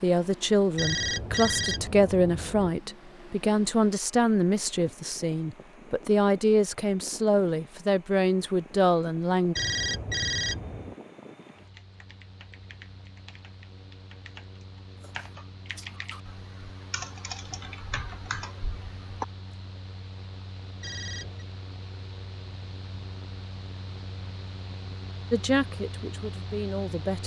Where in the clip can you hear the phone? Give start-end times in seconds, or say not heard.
0.8-2.8, 9.6-10.9, 20.8-21.4.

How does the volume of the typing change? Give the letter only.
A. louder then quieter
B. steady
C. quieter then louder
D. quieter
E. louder
E.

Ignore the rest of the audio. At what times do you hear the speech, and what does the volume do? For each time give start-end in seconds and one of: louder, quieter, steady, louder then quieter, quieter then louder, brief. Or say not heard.
0.0-9.6 steady
25.3-27.2 brief.